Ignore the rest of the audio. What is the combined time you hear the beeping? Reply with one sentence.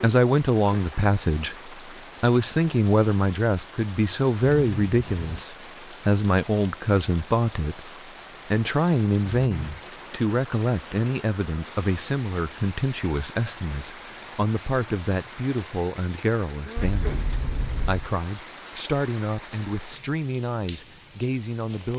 The beeping can be heard for 3 seconds in total.